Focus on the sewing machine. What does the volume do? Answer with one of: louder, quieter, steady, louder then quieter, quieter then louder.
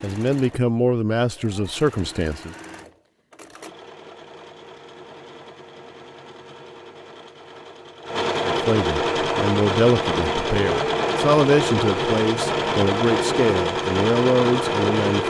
louder.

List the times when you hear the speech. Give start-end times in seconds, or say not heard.
0.0-2.5, 8.4-15.2.